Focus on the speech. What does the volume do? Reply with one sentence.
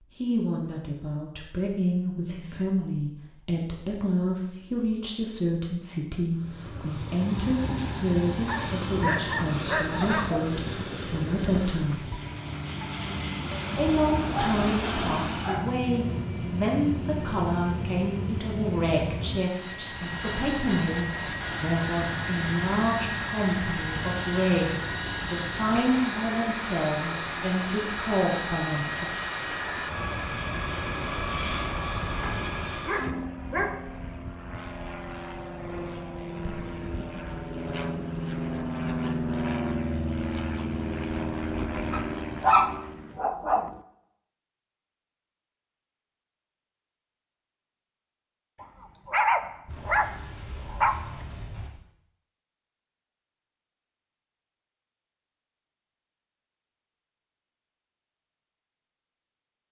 The volume of the speech stays about the same.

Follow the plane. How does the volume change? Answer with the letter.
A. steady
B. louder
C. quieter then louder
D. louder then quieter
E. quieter
A.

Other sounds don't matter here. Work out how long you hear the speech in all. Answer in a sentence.
You can hear the speech for 27 seconds altogether.